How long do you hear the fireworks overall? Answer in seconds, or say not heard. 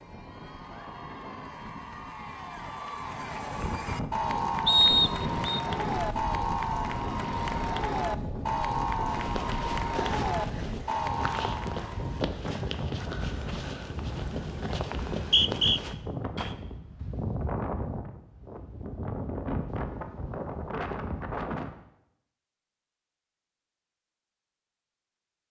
not heard.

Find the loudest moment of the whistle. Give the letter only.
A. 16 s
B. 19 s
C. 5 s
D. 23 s
C.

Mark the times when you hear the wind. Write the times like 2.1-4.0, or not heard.
0.0-21.8.